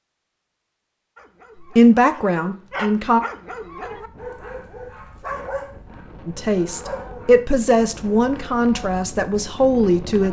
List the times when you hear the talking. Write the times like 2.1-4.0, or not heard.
1.6-3.2, 6.2-10.2.